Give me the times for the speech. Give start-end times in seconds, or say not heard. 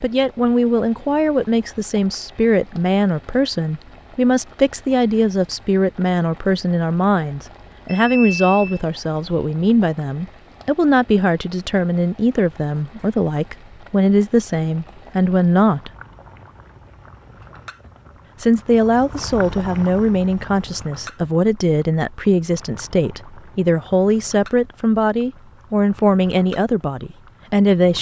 0.0-15.9, 18.4-27.9.